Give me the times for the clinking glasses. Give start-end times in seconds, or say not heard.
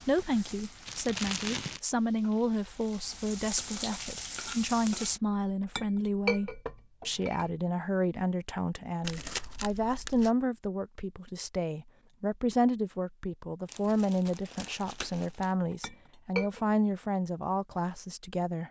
5.8-7.5, 15.8-16.6.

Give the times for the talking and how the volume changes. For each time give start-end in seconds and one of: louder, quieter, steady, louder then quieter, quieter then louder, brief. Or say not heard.
0.1-18.6 steady.